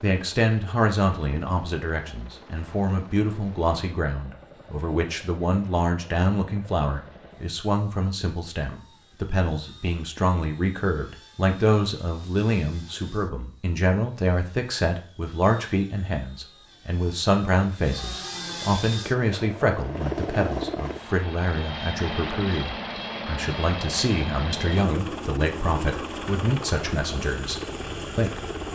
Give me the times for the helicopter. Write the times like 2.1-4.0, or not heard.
0.0-28.7.